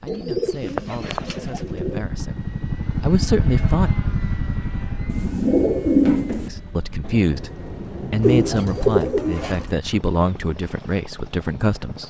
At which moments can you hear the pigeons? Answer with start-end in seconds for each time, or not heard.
0.1-2.0, 5.0-6.5, 8.2-9.7.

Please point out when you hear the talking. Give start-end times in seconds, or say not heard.
0.0-3.9, 6.5-12.0.